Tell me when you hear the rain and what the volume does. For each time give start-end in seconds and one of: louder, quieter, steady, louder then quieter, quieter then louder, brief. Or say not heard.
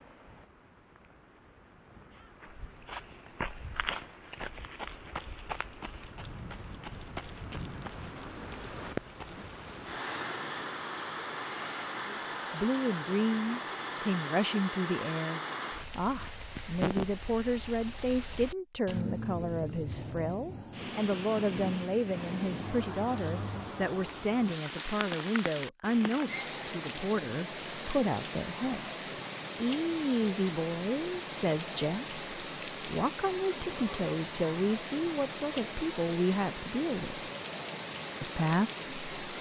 0.0-39.3 louder.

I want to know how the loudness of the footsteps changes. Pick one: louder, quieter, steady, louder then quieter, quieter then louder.
quieter.